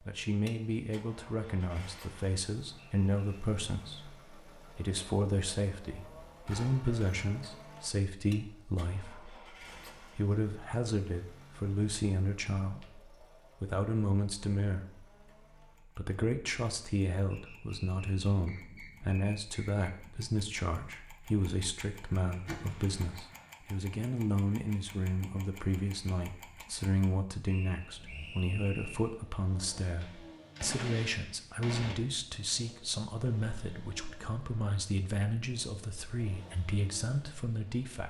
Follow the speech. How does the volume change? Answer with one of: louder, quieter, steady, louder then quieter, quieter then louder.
steady.